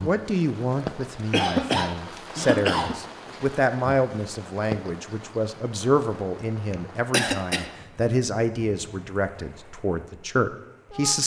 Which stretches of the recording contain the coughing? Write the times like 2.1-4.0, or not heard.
1.3-3.0, 6.7-7.7.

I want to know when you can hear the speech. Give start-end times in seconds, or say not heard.
0.0-11.2.